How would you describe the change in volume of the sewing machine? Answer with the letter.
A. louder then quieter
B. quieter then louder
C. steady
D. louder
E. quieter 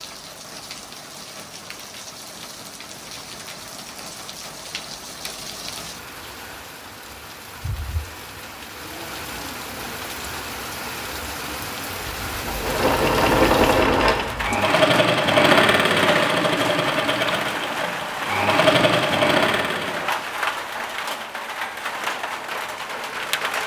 B.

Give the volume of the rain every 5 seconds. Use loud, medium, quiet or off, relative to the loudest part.
medium, medium, loud, loud, loud.